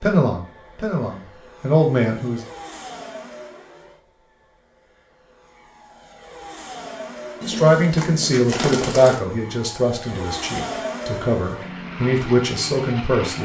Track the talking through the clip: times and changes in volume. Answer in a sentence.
The talking can be heard briefly from 0.0 to 2.5 s; and from 7.5 to 13.4 s, getting quieter then louder.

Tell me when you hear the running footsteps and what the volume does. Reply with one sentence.
You can't hear the running footsteps here.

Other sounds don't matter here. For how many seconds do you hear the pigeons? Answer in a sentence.
You can hear the pigeons for 2 seconds altogether.